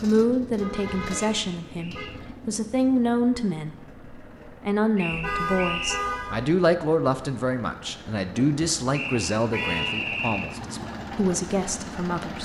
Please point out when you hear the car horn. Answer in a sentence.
The car horn can be heard from 0.6 to 2.0 s, from 5.1 to 6.5 s and from 9.5 to 9.9 s.